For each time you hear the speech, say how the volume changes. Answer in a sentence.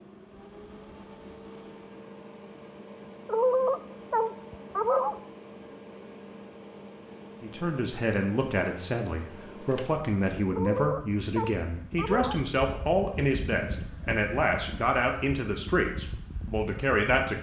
You can hear the speech from 7.4 to 17.3 s, at a steady volume.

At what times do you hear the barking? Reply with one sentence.
The barking can be heard from 3.2 to 5.2 s and from 10.5 to 12.4 s.